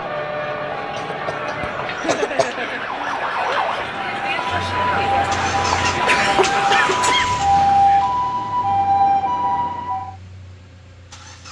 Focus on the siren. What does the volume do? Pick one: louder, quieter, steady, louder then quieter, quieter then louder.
louder.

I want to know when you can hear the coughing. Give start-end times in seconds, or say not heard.
0.9-2.5, 6.0-7.4.